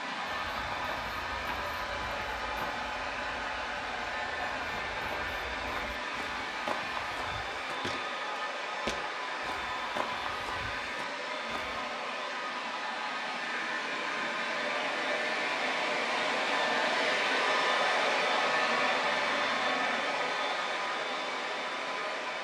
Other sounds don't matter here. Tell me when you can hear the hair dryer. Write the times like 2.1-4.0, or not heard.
0.0-22.3.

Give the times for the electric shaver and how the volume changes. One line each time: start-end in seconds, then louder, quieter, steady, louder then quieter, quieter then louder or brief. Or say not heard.
not heard.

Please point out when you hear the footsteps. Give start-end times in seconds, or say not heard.
0.2-11.9.